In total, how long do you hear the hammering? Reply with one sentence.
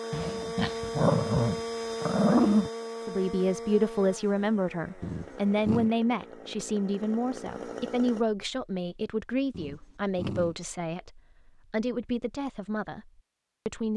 You can't hear the hammering here.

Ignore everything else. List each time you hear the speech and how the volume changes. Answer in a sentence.
You can hear the speech from 3.0 to 13.9 s, getting quieter.